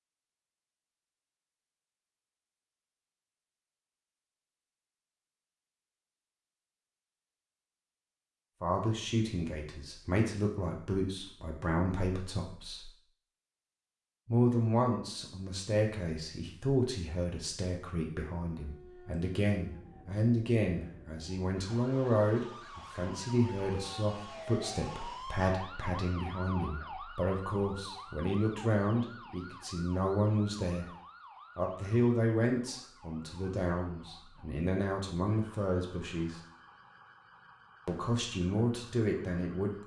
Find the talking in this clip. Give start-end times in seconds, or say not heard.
8.6-12.8, 14.2-30.9, 31.6-36.4, 37.9-39.7.